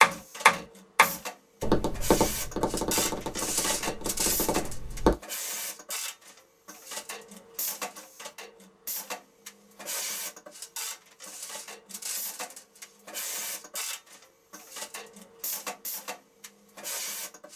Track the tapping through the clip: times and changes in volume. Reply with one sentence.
You can hear the tapping from 0.0 to 5.2 s, getting quieter.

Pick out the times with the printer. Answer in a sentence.
The printer can be heard from 0.0 to 17.5 s.